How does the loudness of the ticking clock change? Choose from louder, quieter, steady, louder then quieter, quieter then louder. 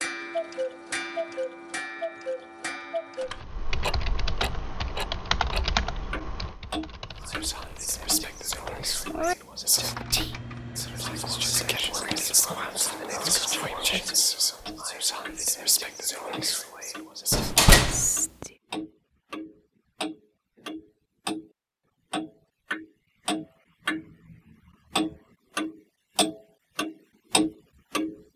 quieter then louder.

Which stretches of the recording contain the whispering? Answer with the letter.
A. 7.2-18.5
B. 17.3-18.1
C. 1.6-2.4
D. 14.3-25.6
A.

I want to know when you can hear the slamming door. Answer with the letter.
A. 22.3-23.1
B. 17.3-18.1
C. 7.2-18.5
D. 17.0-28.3
B.